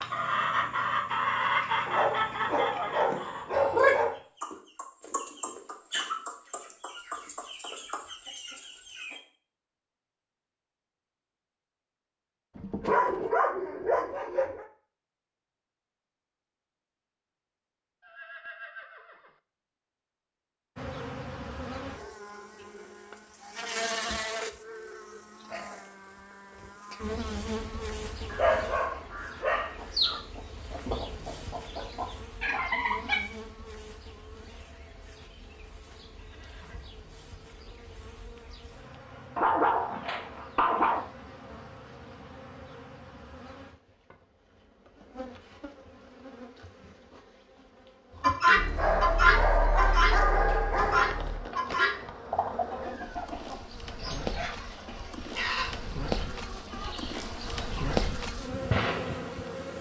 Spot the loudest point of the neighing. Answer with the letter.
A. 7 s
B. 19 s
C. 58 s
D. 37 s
B.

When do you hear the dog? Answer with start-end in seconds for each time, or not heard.
1.9-4.2, 12.6-14.7, 28.3-30.2, 39.4-41.0, 48.5-51.5.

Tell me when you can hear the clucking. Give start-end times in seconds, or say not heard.
0.0-9.2, 29.8-33.2, 48.2-58.1.